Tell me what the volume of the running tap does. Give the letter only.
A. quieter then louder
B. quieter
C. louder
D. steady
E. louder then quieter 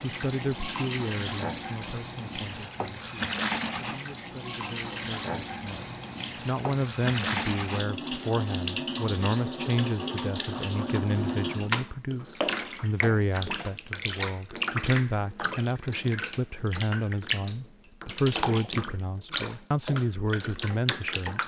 D.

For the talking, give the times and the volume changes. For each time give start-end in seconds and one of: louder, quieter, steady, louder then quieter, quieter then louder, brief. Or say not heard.
0.0-21.4 louder.